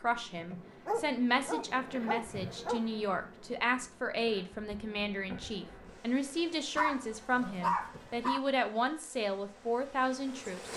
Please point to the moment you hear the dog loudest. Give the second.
8 s.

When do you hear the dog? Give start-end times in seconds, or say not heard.
0.8-2.9, 6.8-8.4.